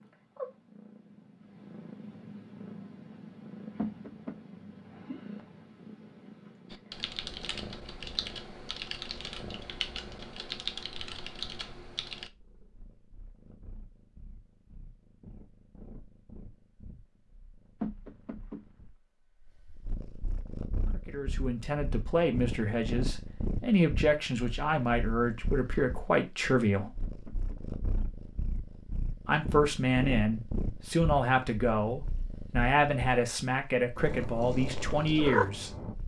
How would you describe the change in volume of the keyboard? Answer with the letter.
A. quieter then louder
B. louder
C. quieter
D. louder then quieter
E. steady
E.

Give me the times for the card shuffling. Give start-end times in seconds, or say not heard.
not heard.